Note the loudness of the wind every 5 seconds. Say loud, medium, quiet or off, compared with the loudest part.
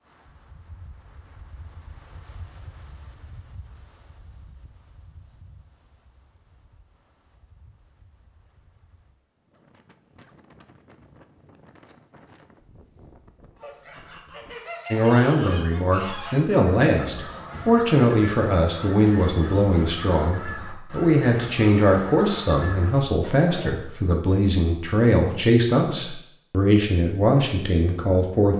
loud, medium, loud, off, off, off.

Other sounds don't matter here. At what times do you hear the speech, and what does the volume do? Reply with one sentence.
You can hear the speech from 14.9 to 28.5 s, at a steady volume.